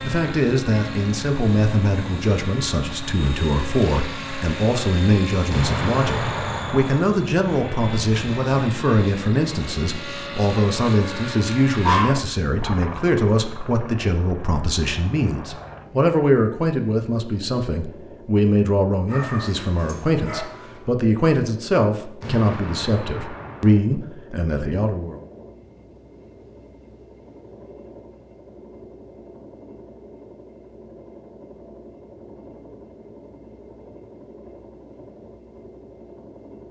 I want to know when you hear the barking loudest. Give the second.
12 s.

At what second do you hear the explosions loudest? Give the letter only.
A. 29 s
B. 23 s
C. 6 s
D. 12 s
C.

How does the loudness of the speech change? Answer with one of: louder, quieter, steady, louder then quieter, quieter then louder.
steady.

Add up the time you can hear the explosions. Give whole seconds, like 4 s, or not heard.
3 s.